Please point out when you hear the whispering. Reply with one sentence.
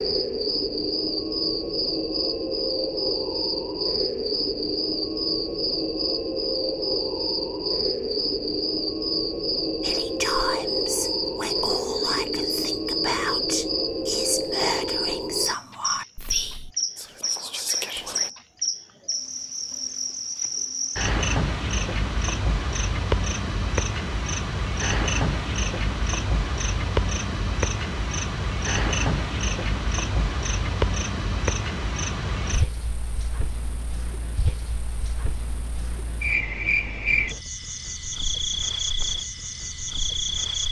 The whispering can be heard from 9.8 to 18.3 s.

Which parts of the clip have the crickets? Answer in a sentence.
The crickets can be heard from 0.0 to 40.6 s.